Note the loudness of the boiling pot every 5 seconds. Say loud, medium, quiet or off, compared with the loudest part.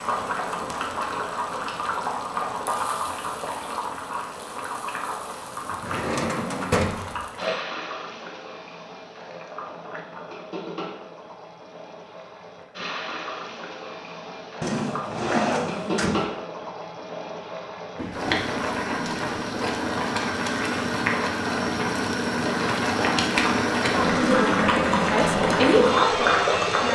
medium, quiet, quiet, medium, loud, loud.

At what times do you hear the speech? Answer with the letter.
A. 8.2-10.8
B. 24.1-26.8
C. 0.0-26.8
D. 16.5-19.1
B.